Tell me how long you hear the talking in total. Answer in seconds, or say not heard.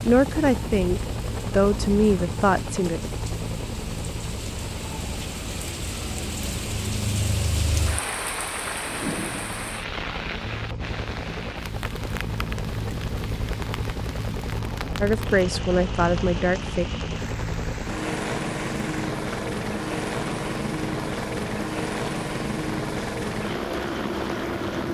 5 s.